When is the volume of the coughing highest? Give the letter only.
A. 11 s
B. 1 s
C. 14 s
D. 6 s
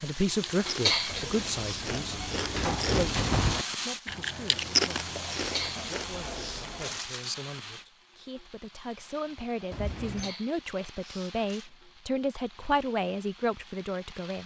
B.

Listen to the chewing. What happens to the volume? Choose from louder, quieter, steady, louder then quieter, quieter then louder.
louder then quieter.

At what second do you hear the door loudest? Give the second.
3 s.